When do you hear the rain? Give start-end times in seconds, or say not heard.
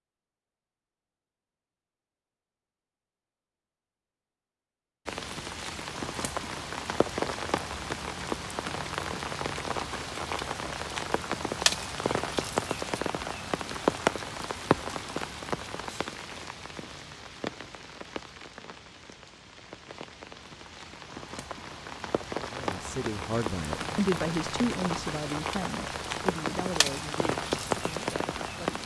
5.0-28.8.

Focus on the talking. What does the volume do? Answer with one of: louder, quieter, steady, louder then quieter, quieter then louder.
quieter.